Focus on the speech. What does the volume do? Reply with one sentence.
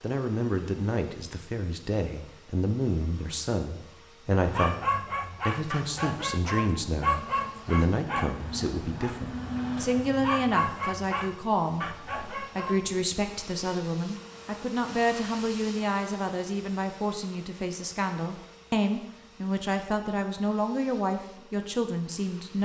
The volume of the speech stays about the same.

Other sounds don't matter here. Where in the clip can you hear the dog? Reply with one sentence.
The dog can be heard from 4.5 to 13.1 s.